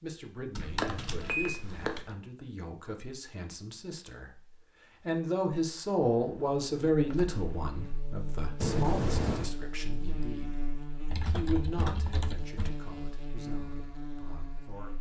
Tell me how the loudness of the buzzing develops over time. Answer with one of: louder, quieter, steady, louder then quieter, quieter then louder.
steady.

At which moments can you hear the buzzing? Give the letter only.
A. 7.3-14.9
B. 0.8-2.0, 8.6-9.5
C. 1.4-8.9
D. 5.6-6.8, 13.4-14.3
A.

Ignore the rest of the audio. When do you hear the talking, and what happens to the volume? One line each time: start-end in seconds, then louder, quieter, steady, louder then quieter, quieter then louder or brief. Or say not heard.
0.0-14.9 louder then quieter.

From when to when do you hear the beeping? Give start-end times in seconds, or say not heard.
0.8-2.0, 8.6-9.5.